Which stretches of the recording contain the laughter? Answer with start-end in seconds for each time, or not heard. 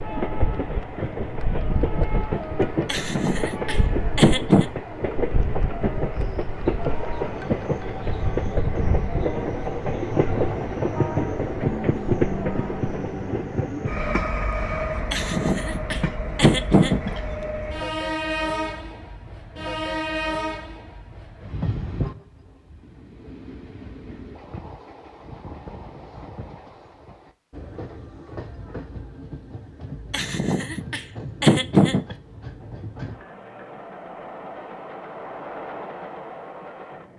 2.9-4.7, 15.1-17.2, 30.1-32.0.